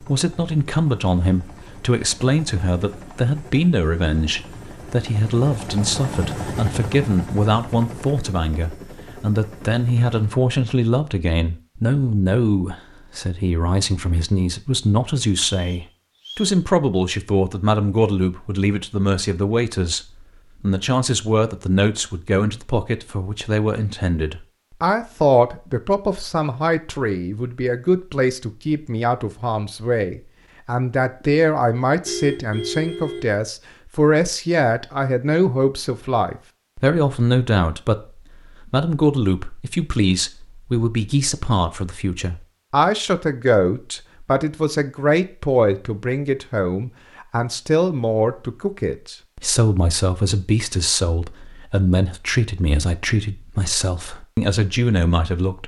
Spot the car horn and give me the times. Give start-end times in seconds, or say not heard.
32.0-33.4.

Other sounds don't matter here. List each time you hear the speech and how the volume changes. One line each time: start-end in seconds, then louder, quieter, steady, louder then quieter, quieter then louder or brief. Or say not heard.
0.0-20.0 steady
20.6-55.6 steady.